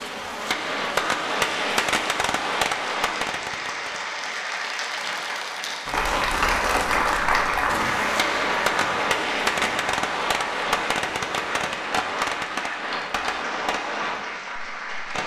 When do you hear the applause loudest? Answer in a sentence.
The volume of the applause peaks at 7 seconds.